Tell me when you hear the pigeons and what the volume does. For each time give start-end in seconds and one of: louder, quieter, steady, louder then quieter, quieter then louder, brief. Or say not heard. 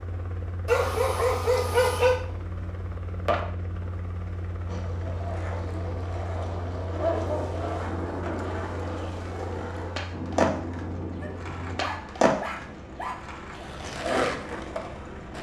not heard.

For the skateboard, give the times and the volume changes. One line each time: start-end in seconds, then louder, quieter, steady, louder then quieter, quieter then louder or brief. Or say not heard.
4.7-15.3 louder.